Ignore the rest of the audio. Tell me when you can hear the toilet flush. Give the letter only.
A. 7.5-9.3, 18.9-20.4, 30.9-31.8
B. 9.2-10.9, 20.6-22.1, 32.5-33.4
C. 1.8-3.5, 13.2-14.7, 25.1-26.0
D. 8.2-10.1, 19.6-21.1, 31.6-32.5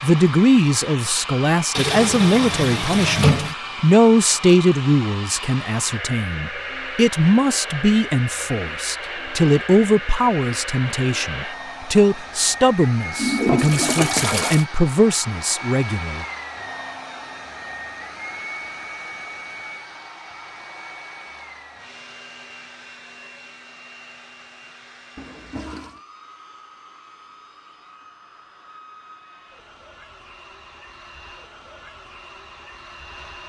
C.